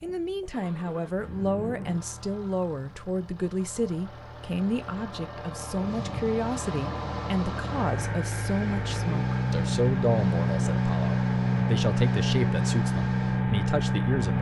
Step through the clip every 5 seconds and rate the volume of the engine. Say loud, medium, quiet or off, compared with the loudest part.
quiet, medium, loud.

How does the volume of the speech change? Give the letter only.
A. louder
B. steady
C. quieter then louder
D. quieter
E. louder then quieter
B.